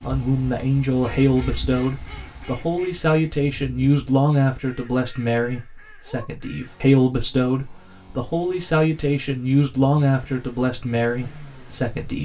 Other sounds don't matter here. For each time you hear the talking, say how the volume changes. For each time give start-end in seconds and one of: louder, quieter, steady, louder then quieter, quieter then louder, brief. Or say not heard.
0.0-12.2 steady.